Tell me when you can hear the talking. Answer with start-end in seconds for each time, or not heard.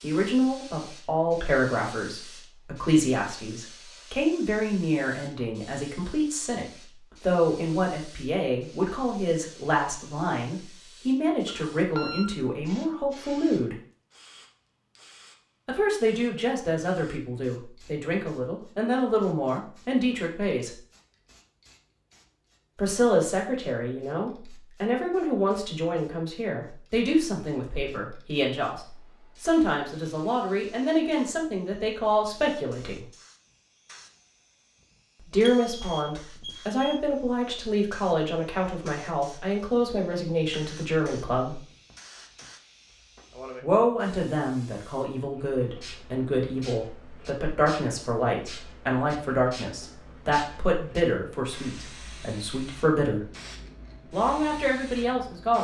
0.0-13.8, 15.7-20.7, 22.8-33.0, 35.3-41.6, 43.6-53.2, 54.1-55.5.